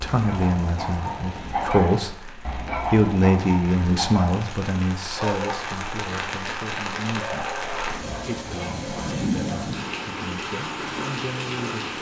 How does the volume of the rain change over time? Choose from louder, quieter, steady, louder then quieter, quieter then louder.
louder.